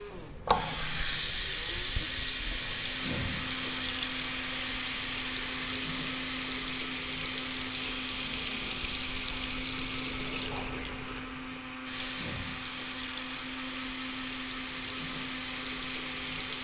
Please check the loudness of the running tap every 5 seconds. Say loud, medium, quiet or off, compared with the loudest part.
loud, loud, medium, loud.